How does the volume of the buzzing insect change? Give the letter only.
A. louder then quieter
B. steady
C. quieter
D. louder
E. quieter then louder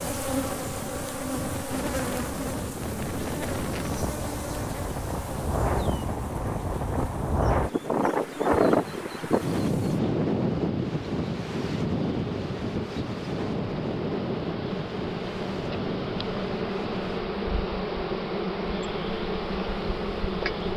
E.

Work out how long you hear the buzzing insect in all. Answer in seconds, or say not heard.
21 s.